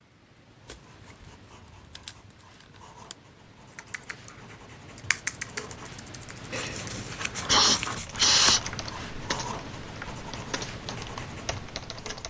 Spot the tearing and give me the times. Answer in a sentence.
The tearing can be heard from 0.7 to 3.1 s and from 6.5 to 8.6 s.